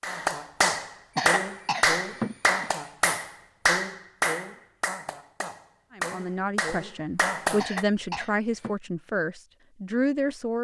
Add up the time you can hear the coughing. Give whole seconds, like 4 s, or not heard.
3 s.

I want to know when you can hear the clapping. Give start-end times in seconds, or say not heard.
0.0-7.8.